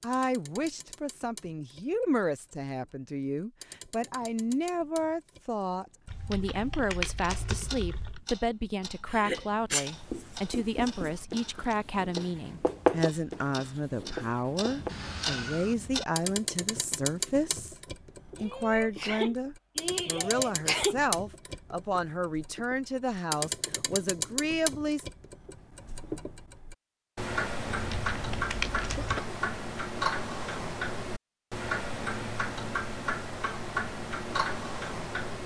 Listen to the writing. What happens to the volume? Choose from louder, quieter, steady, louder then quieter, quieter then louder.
louder then quieter.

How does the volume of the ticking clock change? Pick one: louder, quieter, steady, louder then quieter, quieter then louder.
louder.